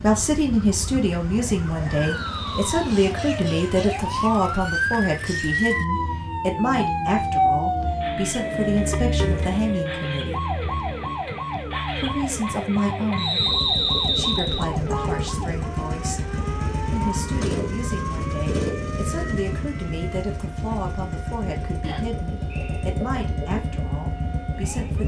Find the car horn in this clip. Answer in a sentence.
You can hear the car horn from 8.3 to 9.7 s and from 14.7 to 15.3 s.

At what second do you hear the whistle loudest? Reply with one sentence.
The loudest moment of the whistle is at 14 seconds.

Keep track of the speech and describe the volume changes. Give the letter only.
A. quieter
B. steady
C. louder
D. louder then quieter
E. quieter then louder
A.